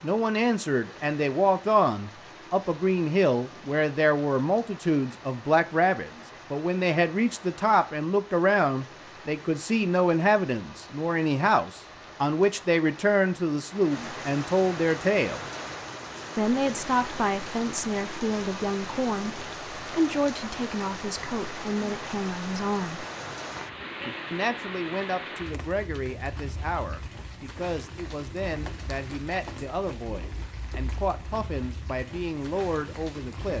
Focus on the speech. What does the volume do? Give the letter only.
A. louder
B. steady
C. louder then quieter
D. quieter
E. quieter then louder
D.